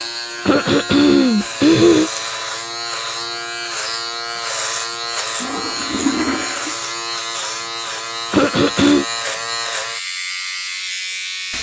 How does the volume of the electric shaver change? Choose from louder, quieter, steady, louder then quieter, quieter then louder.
steady.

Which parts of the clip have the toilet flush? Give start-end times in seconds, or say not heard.
5.4-6.8.